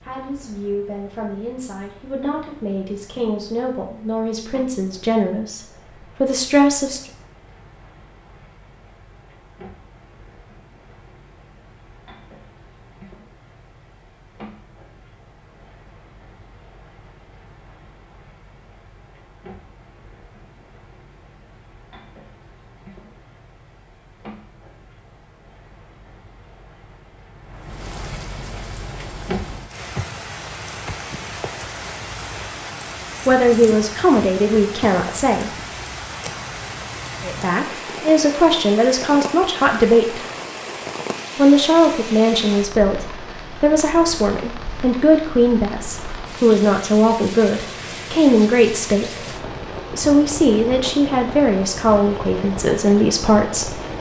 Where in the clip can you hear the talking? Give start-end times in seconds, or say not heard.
0.0-7.0, 33.2-35.5, 37.2-40.2, 41.4-53.8.